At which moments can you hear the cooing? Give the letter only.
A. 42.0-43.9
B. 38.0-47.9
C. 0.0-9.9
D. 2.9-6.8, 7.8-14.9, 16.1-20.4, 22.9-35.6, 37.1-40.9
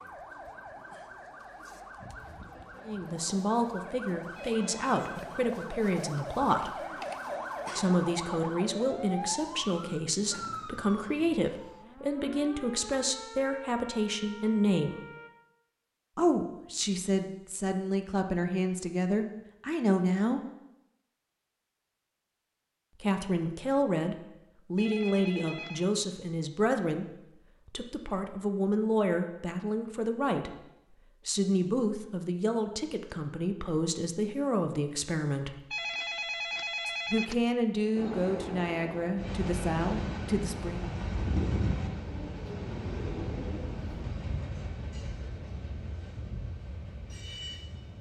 A.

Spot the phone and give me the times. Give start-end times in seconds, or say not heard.
4.3-5.2, 24.8-25.9, 35.7-37.4.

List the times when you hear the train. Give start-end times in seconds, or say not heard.
38.0-47.9.